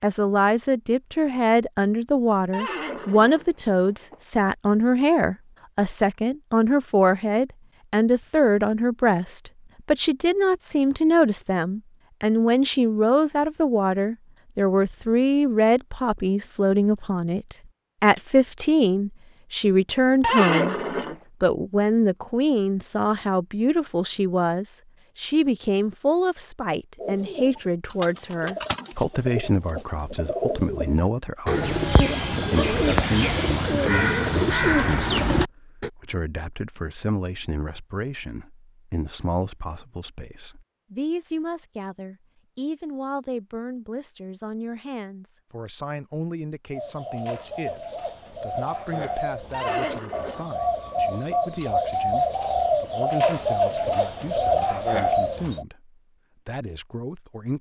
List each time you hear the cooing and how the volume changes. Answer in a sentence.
You can hear the cooing from 26.9 to 35.9 s, getting louder; and from 46.7 to 55.6 s, getting louder.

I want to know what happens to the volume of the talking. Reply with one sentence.
The loudness of the talking goes down.